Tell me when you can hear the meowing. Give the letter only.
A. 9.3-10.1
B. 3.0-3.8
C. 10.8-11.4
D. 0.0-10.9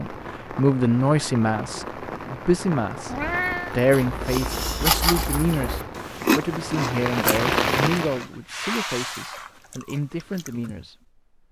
B.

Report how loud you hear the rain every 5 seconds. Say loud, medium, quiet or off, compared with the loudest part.
medium, loud, off.